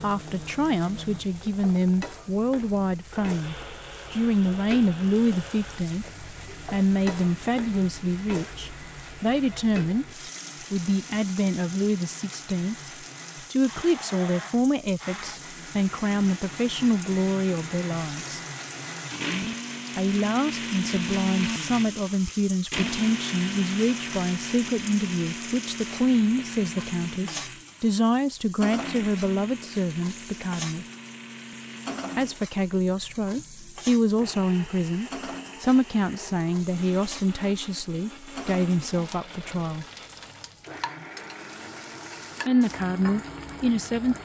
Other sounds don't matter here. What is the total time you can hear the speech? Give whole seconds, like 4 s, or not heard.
38 s.